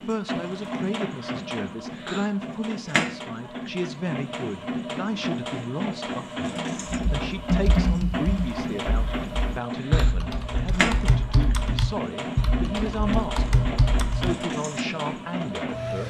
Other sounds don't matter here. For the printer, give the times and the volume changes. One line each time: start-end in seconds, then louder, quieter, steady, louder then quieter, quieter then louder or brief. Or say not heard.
0.0-16.0 steady.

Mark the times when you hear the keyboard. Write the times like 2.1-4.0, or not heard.
6.9-14.3.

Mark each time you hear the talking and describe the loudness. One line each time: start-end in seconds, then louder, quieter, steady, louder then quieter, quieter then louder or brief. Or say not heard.
0.1-16.0 steady.